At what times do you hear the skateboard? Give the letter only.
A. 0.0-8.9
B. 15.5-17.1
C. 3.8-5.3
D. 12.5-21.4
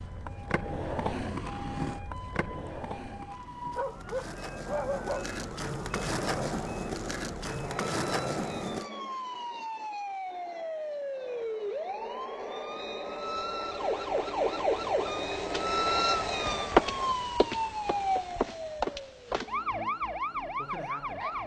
A.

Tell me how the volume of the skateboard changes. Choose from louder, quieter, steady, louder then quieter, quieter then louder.
quieter then louder.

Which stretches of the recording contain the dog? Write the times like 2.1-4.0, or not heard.
3.8-5.3.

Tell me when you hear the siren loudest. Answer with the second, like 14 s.
16 s.